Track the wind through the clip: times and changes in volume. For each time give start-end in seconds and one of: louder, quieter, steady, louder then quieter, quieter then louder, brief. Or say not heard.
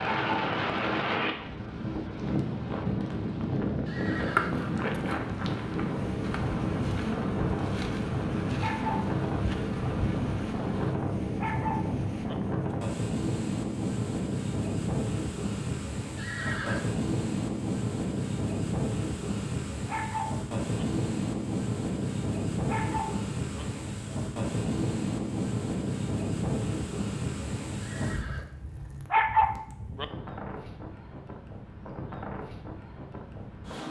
0.0-33.8 quieter.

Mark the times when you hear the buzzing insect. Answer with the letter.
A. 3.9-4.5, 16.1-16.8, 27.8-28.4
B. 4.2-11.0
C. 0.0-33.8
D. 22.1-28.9
B.